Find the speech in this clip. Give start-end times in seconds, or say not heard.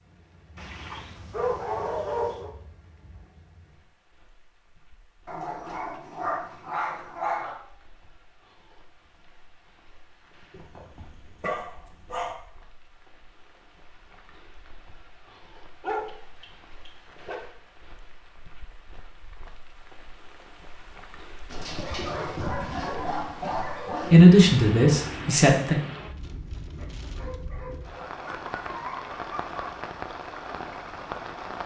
24.1-25.8.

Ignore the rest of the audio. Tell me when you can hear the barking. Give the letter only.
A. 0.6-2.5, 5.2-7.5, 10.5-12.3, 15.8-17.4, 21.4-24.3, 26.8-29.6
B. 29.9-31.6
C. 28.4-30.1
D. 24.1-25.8
A.